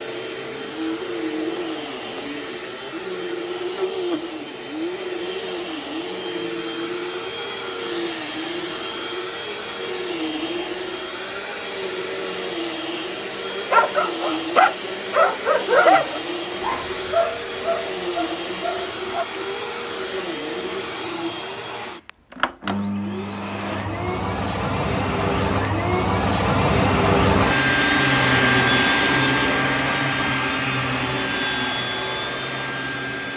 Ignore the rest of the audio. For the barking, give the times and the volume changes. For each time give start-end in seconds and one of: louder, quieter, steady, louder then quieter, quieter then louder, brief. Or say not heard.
13.5-19.2 quieter.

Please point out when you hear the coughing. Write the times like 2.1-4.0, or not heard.
not heard.